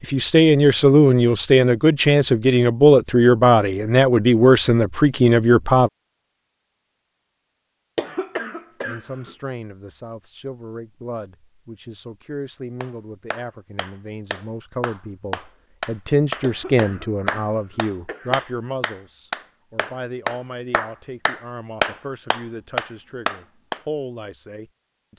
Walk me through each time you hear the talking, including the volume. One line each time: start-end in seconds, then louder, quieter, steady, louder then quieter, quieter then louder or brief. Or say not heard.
0.0-5.9 steady
8.8-25.1 louder then quieter.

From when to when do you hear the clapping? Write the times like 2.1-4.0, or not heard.
12.8-23.8.